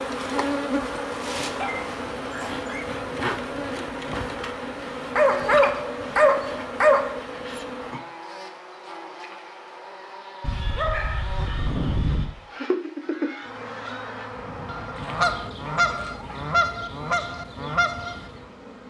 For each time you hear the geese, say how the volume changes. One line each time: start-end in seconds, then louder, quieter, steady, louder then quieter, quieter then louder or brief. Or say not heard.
12.4-18.4 louder.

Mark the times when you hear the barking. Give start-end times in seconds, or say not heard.
1.6-2.9, 5.2-7.2, 10.4-12.3, 14.9-16.5.